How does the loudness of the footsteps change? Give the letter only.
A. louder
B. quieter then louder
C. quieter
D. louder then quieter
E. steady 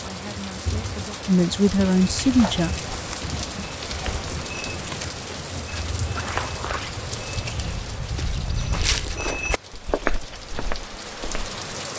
A.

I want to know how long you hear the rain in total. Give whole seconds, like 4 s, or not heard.
12 s.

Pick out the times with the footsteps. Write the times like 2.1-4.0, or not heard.
2.1-11.5.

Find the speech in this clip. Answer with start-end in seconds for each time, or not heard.
0.0-2.8.